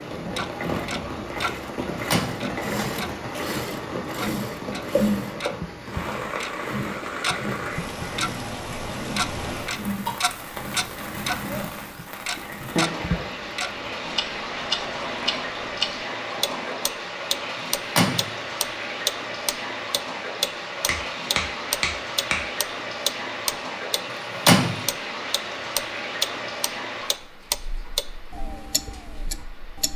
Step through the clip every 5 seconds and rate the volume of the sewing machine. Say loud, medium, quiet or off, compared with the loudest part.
loud, loud, medium, medium, off, off.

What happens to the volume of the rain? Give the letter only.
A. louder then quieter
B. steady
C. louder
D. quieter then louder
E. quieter
B.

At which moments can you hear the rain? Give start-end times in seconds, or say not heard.
0.0-29.9.